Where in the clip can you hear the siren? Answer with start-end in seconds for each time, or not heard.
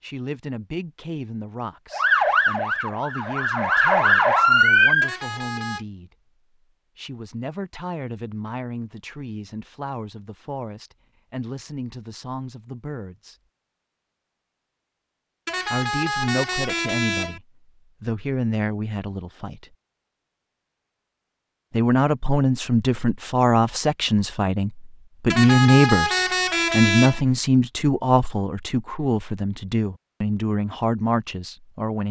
1.9-5.2.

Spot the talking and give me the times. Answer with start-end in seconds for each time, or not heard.
0.0-6.1, 7.0-13.3, 15.7-17.4, 18.0-19.6, 21.7-32.0.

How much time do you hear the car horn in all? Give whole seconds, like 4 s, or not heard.
5 s.